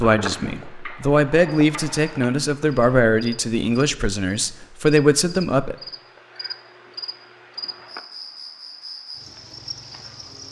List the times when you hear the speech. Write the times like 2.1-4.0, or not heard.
0.0-5.8.